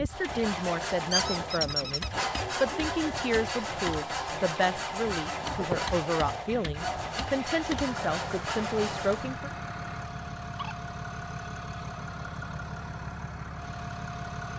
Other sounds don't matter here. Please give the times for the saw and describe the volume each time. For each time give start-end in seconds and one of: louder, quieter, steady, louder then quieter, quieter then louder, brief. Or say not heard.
0.1-9.4 steady.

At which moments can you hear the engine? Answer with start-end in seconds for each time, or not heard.
0.0-14.5.